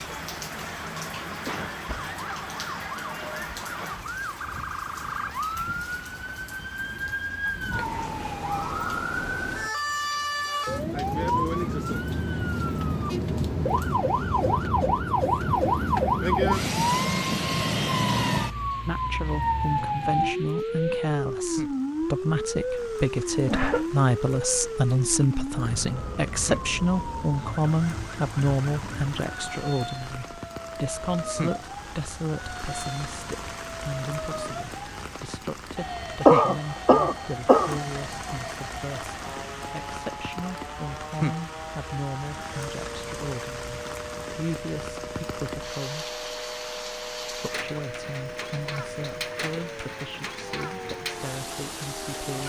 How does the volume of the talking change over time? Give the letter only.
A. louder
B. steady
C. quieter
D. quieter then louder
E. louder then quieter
C.